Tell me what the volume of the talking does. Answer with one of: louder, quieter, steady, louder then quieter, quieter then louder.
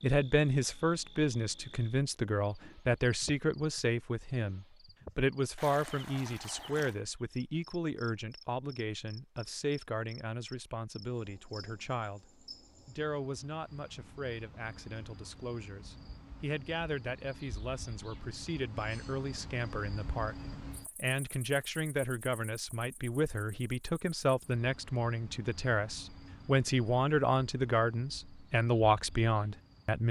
quieter then louder.